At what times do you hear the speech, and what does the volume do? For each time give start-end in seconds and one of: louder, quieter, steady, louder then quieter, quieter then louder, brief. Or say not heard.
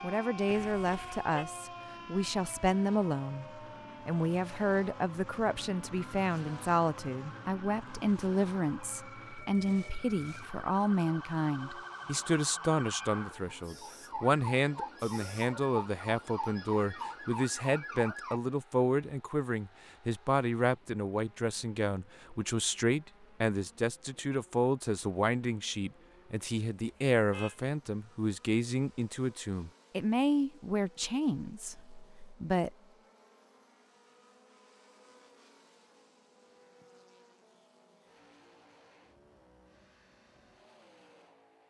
0.0-32.7 steady.